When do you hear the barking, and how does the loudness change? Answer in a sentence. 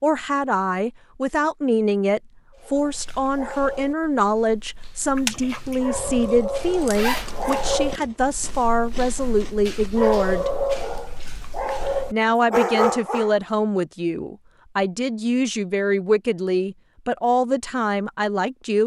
You can hear the barking from 2.5 to 13.3 s, getting louder.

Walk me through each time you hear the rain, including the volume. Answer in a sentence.
The rain can't be heard in this clip.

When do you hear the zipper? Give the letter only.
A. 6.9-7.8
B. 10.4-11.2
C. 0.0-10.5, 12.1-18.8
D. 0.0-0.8
A.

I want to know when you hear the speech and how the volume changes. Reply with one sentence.
You can hear the speech from 0.0 to 10.5 s, at a steady volume; and from 12.1 to 18.8 s, at a steady volume.